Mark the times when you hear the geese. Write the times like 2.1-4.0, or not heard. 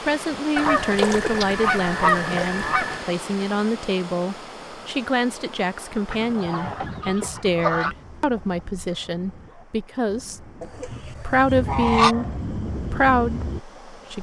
0.6-3.0, 6.1-8.0, 10.6-12.2.